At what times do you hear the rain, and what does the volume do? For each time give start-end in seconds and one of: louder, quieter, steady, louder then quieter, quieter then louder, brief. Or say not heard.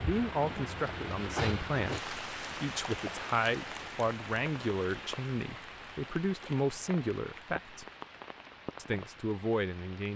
0.0-10.1 quieter.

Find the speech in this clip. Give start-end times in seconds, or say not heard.
0.0-7.8, 8.8-10.1.